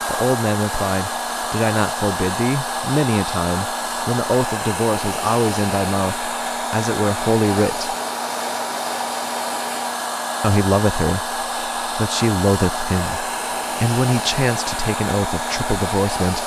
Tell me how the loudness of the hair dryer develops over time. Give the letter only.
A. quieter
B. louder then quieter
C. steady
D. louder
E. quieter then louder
C.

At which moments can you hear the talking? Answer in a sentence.
The talking can be heard from 0.1 to 8.0 s and from 10.4 to 16.4 s.